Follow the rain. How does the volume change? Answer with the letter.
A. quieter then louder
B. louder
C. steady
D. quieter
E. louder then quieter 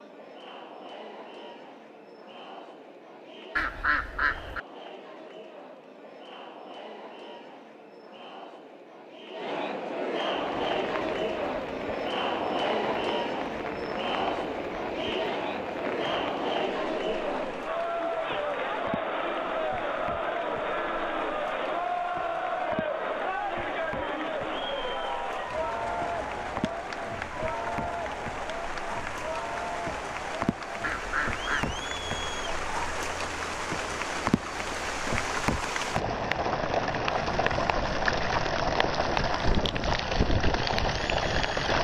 B.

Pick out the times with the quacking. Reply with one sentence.
You can hear the quacking from 3.5 to 4.6 s and from 30.8 to 31.8 s.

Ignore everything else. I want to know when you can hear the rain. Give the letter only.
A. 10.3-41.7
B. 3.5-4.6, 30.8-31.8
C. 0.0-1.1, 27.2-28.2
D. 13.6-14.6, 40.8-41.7
A.